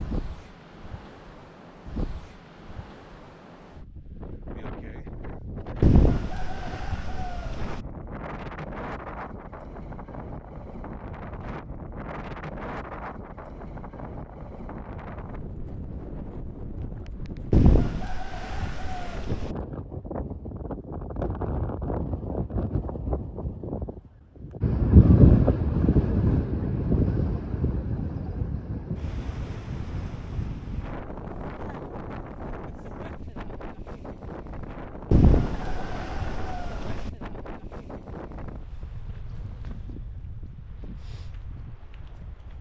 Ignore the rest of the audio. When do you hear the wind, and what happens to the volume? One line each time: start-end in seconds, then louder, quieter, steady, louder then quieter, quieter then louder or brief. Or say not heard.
0.0-42.5 louder then quieter.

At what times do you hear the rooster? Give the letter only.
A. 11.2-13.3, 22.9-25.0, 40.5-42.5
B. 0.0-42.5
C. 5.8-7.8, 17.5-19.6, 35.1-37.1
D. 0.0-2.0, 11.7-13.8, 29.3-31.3
C.